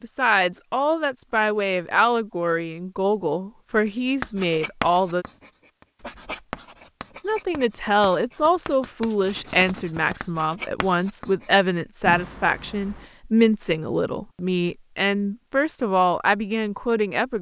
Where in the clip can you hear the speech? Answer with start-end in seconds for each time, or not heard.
0.0-5.2, 7.2-17.3.